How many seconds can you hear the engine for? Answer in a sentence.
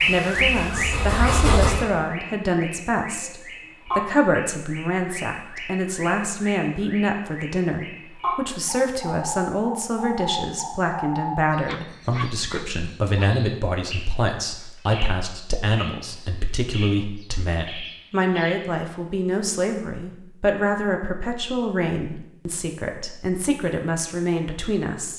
You can hear the engine for 2 seconds altogether.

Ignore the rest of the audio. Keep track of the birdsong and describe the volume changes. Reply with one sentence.
The loudness of the birdsong goes down.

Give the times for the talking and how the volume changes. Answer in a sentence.
You can hear the talking from 0.1 to 25.1 s, at a steady volume.